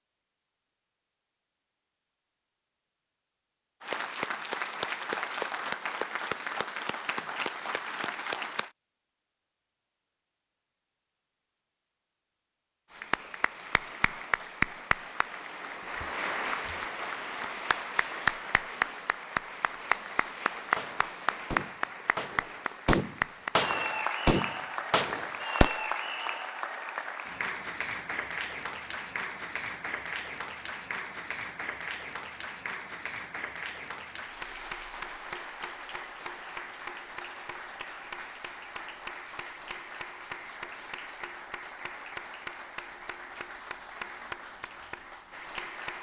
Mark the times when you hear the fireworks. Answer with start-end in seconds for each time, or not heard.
20.8-25.8.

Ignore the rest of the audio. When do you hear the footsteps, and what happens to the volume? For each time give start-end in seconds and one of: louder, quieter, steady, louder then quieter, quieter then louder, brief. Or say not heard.
not heard.